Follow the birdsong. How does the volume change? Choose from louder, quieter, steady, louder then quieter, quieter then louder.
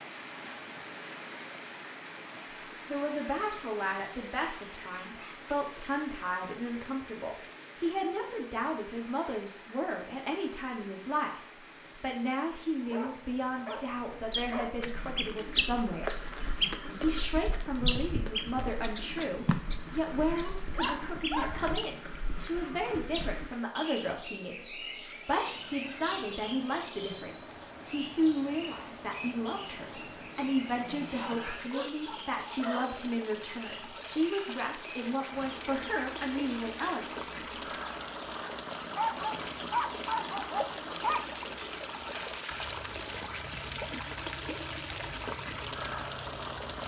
quieter.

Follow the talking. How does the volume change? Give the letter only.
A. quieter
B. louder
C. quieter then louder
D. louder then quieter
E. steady
E.